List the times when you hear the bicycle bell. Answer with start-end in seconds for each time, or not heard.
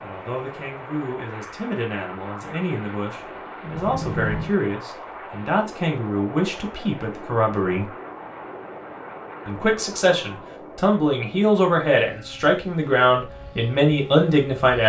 3.7-4.5.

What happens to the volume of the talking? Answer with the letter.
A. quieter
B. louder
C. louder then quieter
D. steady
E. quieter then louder
B.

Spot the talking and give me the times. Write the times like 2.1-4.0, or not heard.
0.0-7.9, 9.4-14.8.